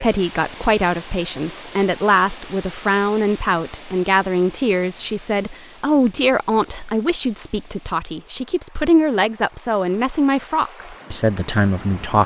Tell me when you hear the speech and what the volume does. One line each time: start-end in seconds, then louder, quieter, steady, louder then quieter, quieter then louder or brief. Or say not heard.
0.0-12.2 steady.